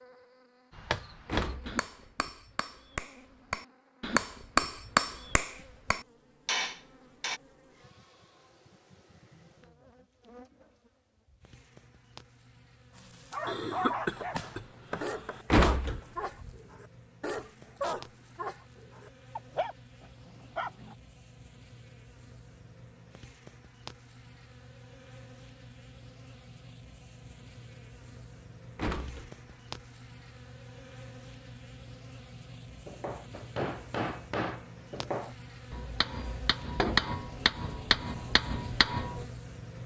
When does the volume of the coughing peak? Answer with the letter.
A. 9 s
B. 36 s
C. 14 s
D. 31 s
C.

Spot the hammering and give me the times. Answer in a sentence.
You can hear the hammering from 0.7 to 7.4 s and from 32.9 to 39.2 s.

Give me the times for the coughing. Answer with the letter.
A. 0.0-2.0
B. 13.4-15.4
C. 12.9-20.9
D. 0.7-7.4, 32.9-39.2
B.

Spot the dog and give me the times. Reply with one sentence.
You can hear the dog from 12.9 to 20.9 s.